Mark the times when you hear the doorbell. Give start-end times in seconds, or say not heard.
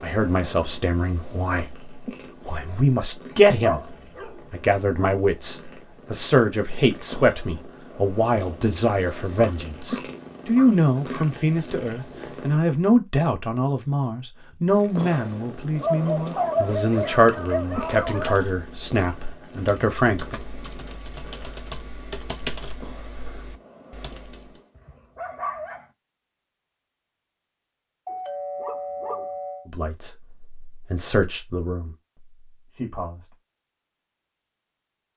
28.1-29.7.